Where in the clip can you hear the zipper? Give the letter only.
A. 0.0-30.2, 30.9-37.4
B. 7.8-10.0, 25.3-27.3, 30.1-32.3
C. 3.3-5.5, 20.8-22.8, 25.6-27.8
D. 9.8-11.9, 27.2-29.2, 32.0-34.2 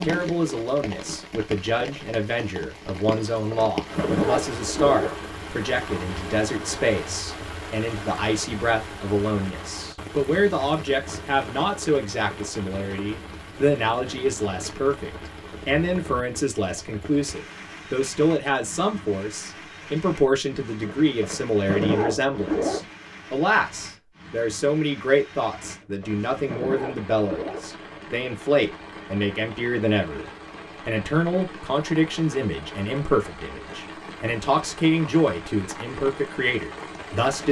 C.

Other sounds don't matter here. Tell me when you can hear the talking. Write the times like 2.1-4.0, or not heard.
0.0-30.2, 30.9-37.4.